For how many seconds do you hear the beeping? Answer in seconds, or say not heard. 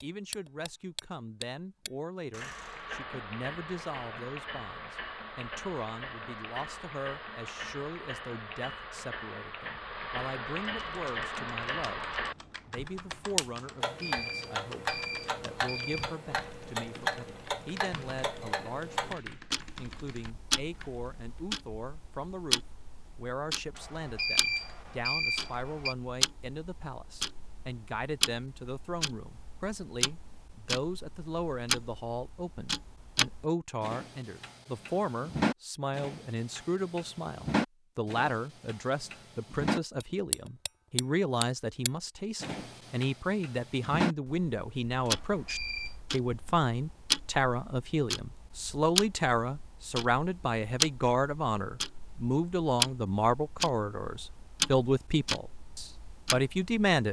6 s.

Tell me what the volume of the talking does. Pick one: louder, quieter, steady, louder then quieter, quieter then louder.
louder.